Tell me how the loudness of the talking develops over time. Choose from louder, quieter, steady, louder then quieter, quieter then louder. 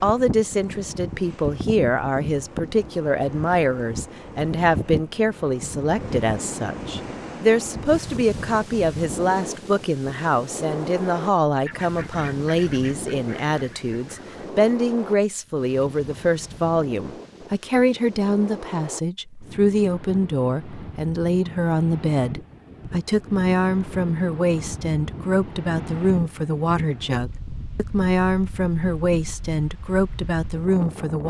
steady.